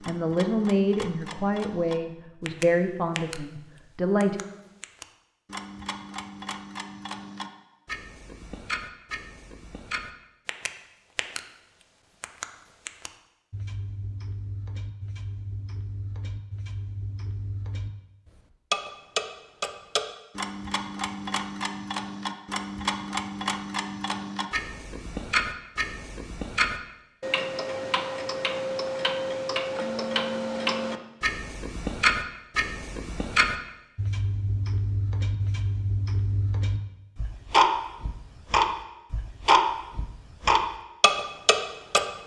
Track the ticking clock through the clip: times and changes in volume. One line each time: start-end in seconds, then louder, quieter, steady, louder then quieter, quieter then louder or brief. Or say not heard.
0.0-42.2 louder.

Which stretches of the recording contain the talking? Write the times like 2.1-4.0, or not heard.
0.1-4.4.